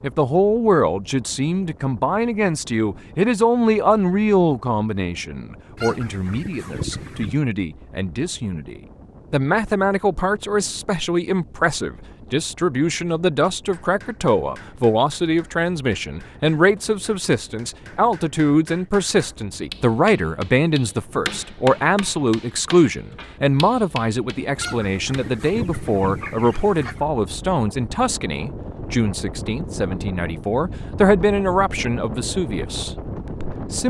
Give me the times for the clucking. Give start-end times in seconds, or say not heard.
5.8-7.5, 24.6-27.1.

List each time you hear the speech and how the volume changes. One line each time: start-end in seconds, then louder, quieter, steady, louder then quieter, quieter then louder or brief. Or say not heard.
0.0-33.8 steady.